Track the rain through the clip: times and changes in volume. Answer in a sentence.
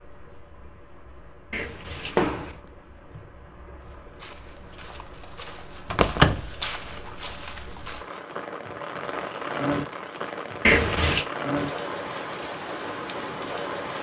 The rain can be heard from 0.0 to 13.9 s, getting louder.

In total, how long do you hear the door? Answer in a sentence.
You can hear the door for 2 seconds altogether.